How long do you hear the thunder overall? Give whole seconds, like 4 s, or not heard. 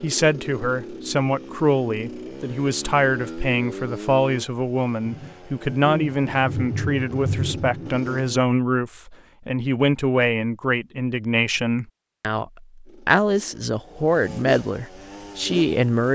3 s.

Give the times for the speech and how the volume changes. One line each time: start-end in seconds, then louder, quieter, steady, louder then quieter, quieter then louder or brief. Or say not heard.
0.0-16.1 steady.